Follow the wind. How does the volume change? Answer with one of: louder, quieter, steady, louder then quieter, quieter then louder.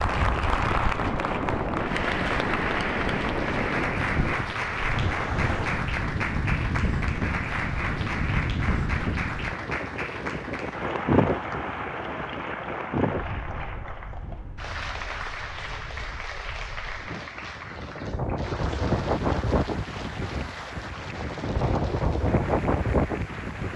quieter then louder.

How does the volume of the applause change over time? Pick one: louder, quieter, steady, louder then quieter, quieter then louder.
quieter.